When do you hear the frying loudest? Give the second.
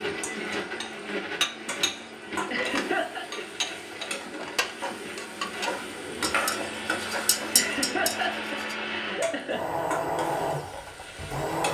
7 s.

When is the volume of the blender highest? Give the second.
10 s.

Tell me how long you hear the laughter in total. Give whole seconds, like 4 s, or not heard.
3 s.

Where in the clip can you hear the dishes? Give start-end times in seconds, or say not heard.
0.8-8.8.